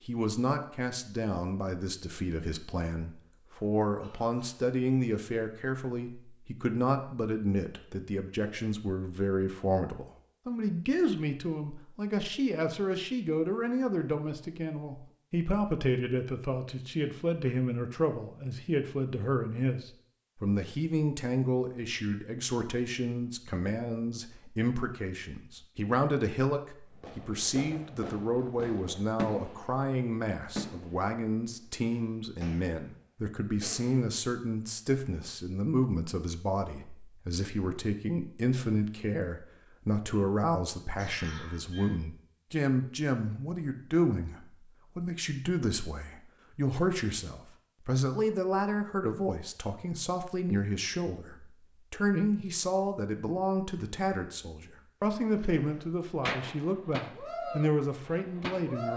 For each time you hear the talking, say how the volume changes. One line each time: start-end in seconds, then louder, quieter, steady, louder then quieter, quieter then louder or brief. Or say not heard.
0.1-58.9 steady.